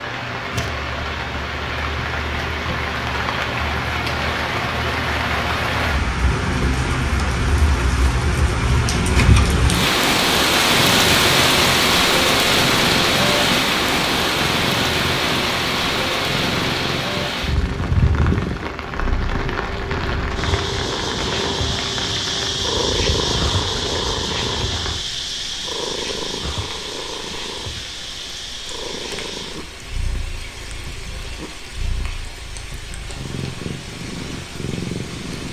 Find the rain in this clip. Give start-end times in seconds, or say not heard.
0.0-35.4.